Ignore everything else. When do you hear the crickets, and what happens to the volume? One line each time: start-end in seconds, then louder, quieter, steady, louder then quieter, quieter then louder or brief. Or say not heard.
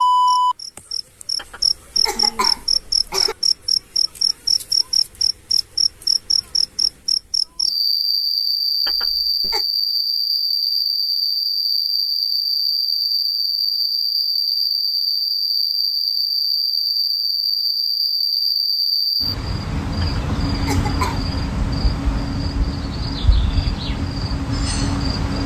0.0-25.4 quieter.